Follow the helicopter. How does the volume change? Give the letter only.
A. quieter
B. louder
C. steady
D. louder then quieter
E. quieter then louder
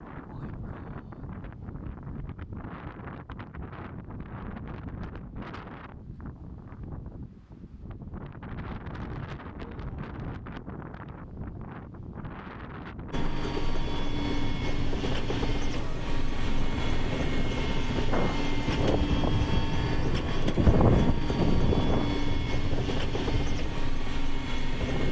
C.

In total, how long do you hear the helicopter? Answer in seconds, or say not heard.
12 s.